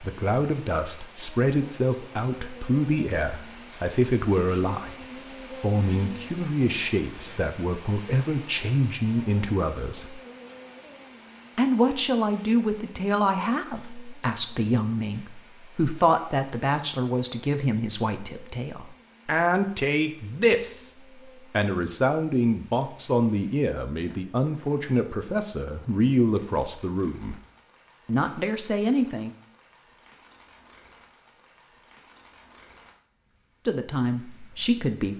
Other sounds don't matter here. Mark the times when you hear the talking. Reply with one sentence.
The talking can be heard from 0.0 to 10.2 s, from 11.6 to 20.9 s, from 21.5 to 27.4 s, from 28.1 to 29.3 s and from 33.6 to 35.1 s.